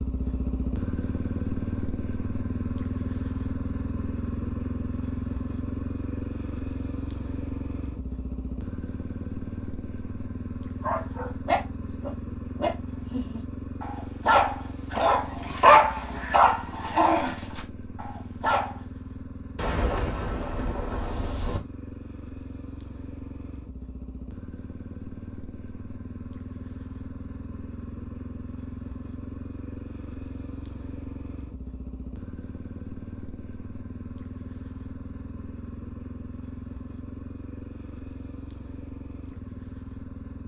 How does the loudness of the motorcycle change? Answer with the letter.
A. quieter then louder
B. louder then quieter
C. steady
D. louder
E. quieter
E.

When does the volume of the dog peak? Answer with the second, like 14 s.
16 s.